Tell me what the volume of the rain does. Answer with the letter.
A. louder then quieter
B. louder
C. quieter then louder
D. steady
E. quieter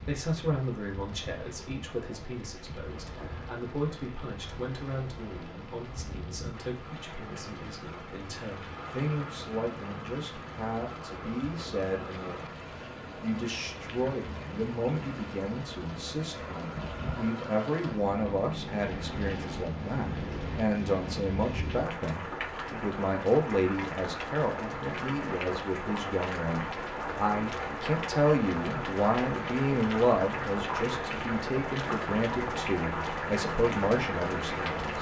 B.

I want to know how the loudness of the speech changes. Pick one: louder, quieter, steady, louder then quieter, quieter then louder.
louder.